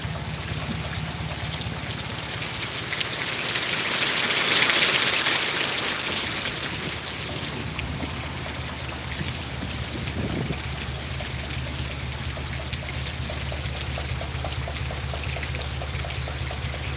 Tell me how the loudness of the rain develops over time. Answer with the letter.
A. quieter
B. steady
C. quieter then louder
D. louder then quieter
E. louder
D.